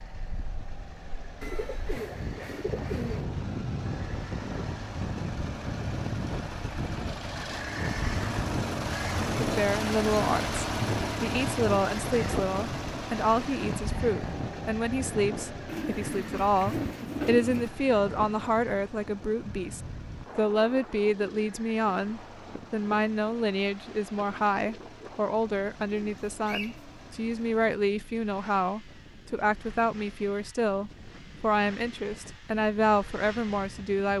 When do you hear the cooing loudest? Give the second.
17 s.